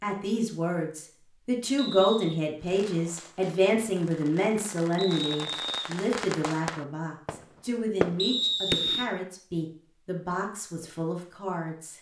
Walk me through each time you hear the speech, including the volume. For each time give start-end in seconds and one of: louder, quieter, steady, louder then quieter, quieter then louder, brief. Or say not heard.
0.0-11.9 quieter.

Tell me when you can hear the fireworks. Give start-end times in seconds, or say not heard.
2.6-9.2.